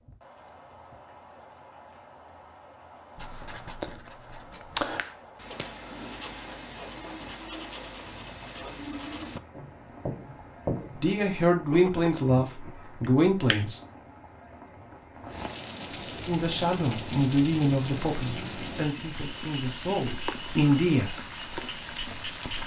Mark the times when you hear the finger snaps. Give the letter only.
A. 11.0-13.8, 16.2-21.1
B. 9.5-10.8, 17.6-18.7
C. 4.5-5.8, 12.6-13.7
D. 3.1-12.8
C.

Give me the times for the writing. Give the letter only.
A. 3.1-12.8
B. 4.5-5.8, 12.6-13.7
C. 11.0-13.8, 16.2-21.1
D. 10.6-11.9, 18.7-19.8
A.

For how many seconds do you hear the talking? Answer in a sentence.
You can hear the talking for 8 seconds altogether.